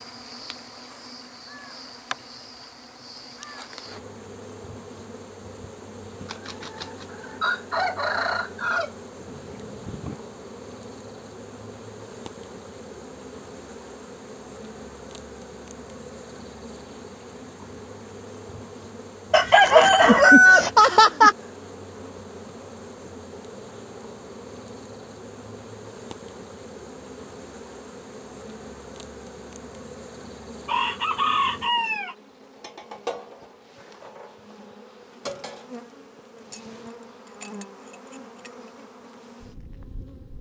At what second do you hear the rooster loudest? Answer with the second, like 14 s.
20 s.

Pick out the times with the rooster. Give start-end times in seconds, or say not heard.
6.2-10.2, 19.3-21.4, 30.6-32.1.